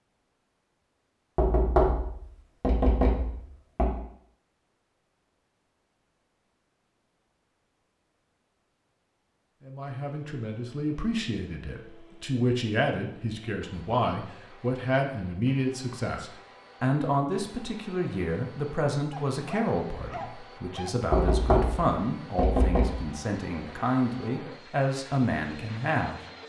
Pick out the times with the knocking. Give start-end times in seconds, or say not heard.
1.4-4.0, 21.1-23.0.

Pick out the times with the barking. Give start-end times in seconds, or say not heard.
19.1-20.9.